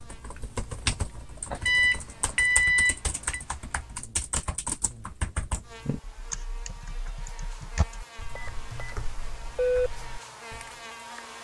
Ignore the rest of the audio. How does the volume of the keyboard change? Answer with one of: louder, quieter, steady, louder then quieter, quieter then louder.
quieter.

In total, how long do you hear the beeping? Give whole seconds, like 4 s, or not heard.
3 s.